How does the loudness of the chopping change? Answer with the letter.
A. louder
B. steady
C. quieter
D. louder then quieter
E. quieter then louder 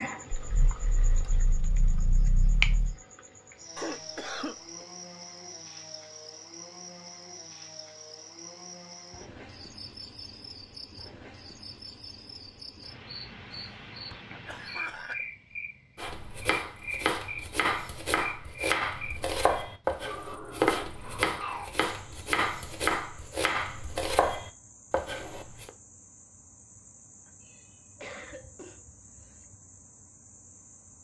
B.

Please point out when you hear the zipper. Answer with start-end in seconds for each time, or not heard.
not heard.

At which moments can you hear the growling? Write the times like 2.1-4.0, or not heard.
0.3-3.0, 20.1-21.8.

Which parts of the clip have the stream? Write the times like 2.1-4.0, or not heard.
not heard.